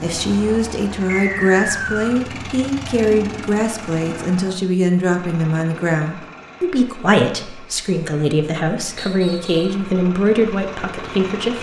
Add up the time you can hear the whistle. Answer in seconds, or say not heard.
2 s.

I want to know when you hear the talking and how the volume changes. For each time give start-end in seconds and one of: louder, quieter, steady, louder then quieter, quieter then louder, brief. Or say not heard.
0.0-11.5 steady.